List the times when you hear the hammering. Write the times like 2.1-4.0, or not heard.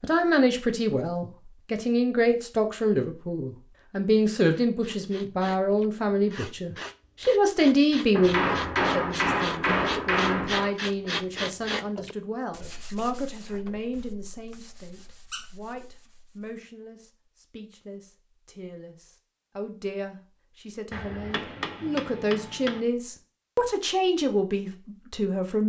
8.2-10.7, 20.9-22.8.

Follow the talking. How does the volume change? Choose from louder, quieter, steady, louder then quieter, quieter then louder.
quieter then louder.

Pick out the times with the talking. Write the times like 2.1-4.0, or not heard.
0.0-25.6.